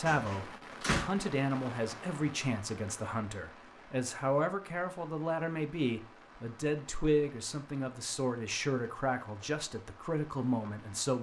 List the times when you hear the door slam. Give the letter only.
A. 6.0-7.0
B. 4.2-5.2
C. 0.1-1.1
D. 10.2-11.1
C.